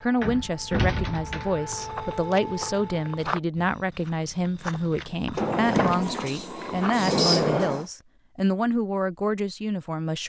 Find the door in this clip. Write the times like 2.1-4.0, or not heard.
0.2-1.6, 5.3-7.8.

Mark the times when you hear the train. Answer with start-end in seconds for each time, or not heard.
5.5-7.9.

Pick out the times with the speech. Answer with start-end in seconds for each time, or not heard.
0.0-10.2.